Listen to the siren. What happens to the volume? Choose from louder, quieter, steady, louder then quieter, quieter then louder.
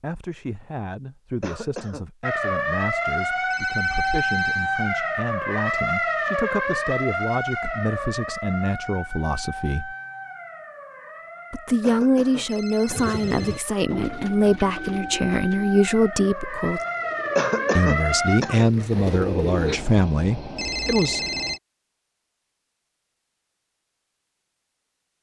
quieter then louder.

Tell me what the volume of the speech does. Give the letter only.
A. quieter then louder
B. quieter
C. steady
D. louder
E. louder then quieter
D.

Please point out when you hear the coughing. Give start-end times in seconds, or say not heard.
1.4-2.0, 11.8-13.2, 17.4-18.6.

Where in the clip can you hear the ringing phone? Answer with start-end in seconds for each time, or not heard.
3.5-4.7, 12.4-13.7, 20.6-21.6.